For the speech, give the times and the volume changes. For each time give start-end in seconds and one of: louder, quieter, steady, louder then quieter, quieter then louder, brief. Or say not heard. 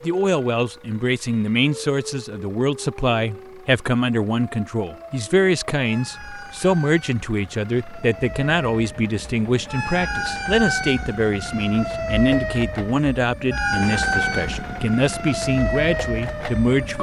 0.0-16.9 steady.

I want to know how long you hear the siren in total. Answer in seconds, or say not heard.
17 s.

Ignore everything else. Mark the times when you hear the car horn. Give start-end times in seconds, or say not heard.
not heard.